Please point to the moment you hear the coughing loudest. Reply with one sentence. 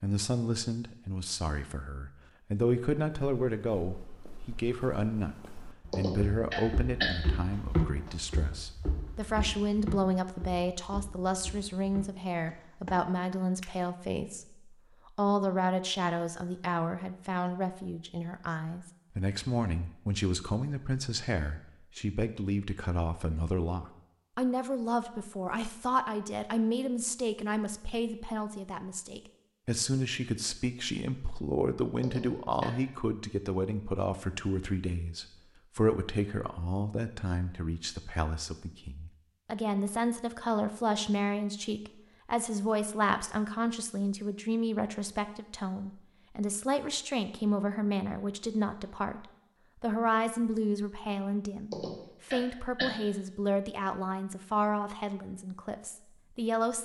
The volume of the coughing peaks at 7 seconds.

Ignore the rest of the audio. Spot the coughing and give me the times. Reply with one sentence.
The coughing can be heard from 5.9 to 7.1 s, from 32.0 to 32.7 s and from 51.7 to 52.9 s.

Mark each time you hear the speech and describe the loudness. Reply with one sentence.
The speech can be heard from 0.0 to 56.8 s, at a steady volume.